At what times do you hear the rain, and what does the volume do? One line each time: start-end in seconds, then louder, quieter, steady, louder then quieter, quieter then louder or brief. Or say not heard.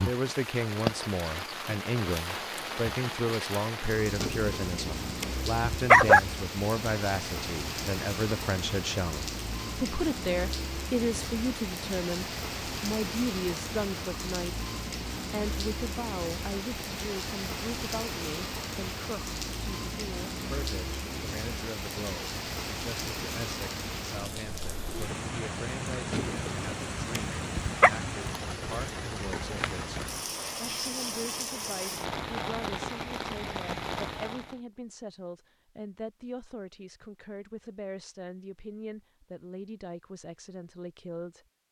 0.0-34.6 steady.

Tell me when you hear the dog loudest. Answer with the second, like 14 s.
6 s.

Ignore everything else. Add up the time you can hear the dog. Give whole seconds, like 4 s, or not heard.
4 s.